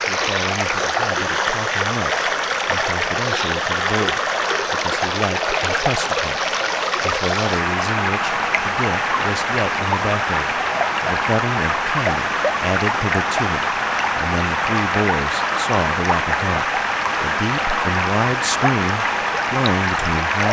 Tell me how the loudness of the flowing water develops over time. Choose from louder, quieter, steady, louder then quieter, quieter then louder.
steady.